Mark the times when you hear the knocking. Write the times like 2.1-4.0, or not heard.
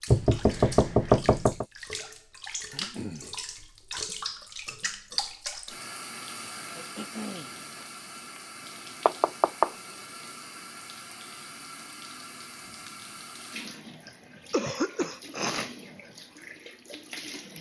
0.1-1.6, 9.1-9.7.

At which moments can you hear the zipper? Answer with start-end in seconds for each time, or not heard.
not heard.